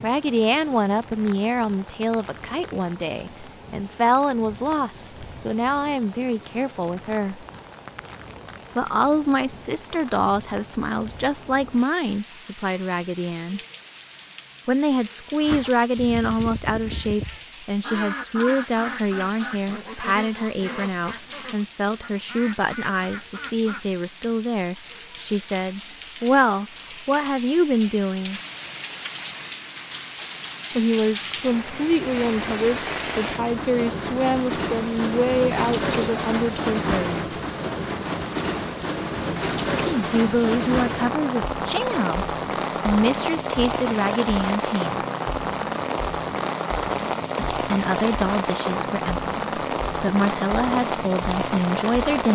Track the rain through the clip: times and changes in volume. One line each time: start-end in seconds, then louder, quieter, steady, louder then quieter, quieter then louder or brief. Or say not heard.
0.0-52.3 louder.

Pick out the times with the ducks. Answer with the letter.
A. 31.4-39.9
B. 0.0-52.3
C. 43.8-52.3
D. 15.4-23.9
D.